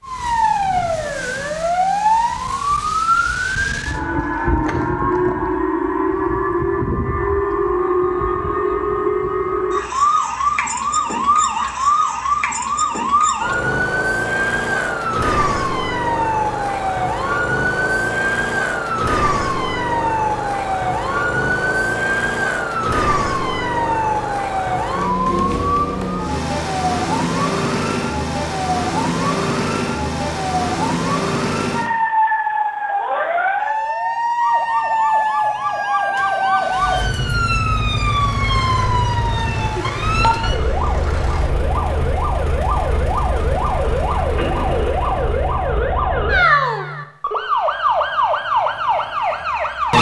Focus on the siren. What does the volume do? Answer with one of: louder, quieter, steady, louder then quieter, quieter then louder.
steady.